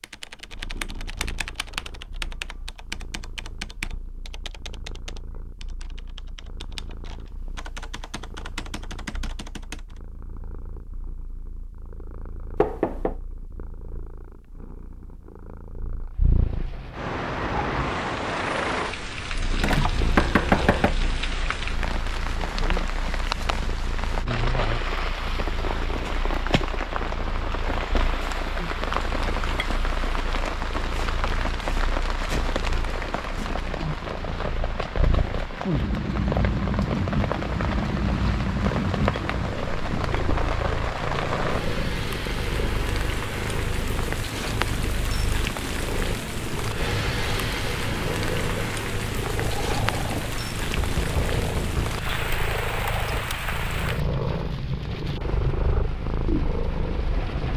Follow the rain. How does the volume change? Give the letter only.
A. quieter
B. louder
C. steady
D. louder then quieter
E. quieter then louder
C.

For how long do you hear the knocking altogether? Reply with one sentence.
You can hear the knocking for 3 seconds altogether.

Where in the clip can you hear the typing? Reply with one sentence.
You can hear the typing from 0.0 to 9.9 s.